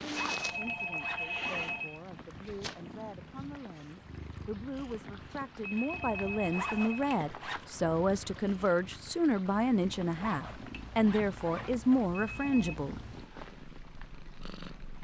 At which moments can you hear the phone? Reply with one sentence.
The phone can be heard from 0.3 to 2.0 s, from 5.7 to 7.0 s and from 12.3 to 12.8 s.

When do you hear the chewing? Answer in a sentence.
The chewing can't be heard in this clip.